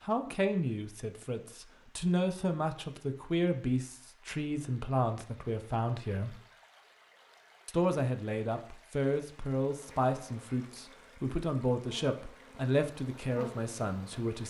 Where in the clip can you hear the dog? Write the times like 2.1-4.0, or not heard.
not heard.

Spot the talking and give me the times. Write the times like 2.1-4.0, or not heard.
0.0-6.4, 7.7-14.4.